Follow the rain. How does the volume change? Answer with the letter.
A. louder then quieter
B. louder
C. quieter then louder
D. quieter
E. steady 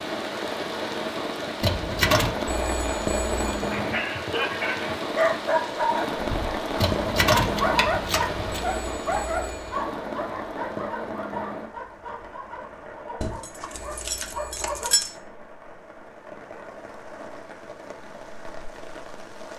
D.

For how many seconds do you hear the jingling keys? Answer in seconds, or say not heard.
5 s.